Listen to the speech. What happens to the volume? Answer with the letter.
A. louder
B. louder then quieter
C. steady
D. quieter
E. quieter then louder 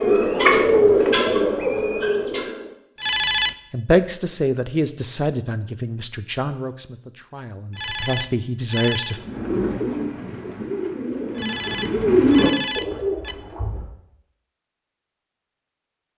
E.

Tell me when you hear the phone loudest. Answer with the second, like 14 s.
3 s.